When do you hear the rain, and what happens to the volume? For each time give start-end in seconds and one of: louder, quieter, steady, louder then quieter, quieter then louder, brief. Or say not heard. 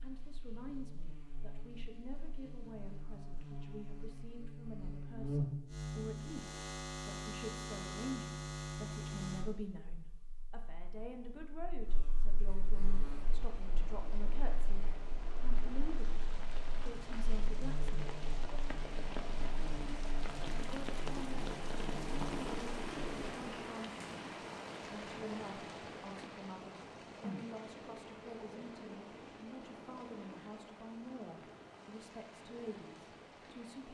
12.8-33.8 louder then quieter.